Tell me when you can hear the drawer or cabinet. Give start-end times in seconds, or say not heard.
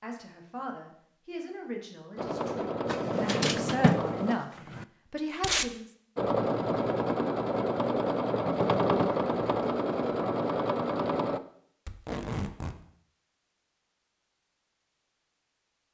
2.9-4.8.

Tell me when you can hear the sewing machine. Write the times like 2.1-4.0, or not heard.
2.1-4.3, 6.2-11.4.